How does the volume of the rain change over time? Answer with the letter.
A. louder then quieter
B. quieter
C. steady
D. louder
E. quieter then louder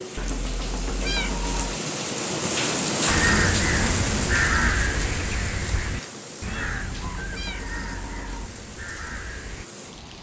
A.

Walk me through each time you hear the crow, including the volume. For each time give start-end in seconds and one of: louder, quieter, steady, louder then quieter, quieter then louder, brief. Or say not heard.
3.0-9.7 quieter.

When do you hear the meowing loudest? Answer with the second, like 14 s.
1 s.